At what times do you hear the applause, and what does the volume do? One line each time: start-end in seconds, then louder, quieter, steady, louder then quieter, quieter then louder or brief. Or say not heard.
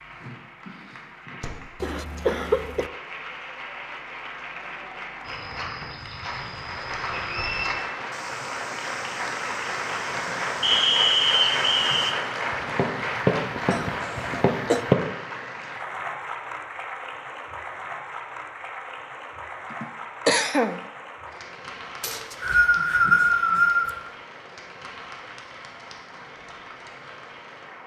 0.0-27.8 louder then quieter.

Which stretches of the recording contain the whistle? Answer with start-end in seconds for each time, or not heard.
7.2-7.8, 10.6-12.1, 22.0-23.9.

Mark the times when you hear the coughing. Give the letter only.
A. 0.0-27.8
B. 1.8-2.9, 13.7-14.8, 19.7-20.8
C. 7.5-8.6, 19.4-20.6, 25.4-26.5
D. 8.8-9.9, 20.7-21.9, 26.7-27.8
B.